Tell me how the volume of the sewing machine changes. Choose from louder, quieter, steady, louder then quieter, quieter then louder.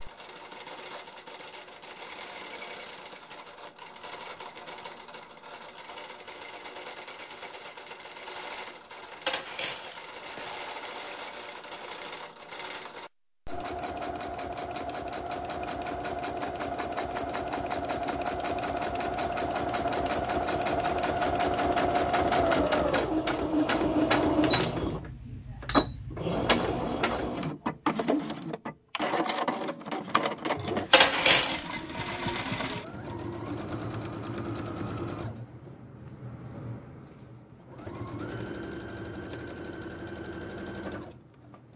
louder then quieter.